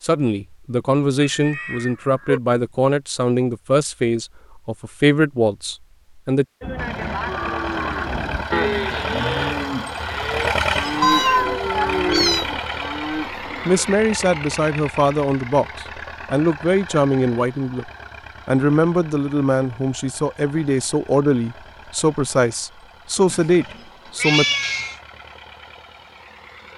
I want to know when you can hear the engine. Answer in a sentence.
The engine can be heard from 6.8 to 26.7 s.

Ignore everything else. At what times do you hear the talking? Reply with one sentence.
You can hear the talking from 0.0 to 6.5 s and from 13.7 to 24.4 s.